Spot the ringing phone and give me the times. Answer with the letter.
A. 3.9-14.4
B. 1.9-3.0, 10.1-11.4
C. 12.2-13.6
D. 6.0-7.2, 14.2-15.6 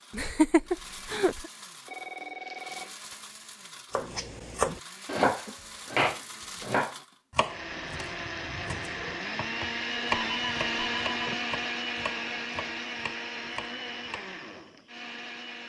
B.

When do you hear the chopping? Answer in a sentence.
The chopping can be heard from 3.9 to 14.4 s.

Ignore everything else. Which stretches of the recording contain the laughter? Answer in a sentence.
You can hear the laughter from 0.1 to 1.5 s.